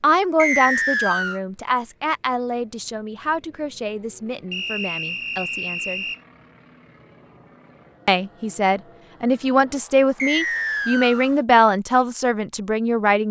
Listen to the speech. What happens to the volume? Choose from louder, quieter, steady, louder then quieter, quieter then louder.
quieter then louder.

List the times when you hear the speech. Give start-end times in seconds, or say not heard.
0.0-6.0, 8.1-13.2.